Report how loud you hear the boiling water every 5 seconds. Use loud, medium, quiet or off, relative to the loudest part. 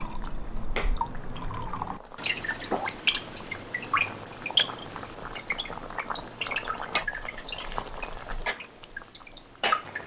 medium, loud.